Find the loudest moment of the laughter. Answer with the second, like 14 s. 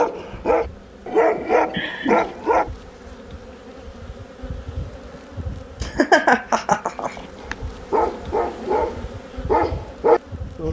6 s.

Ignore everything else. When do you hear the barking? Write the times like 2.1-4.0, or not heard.
0.0-2.7, 7.4-10.6.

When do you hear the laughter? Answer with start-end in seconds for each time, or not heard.
1.7-2.3, 5.8-7.5.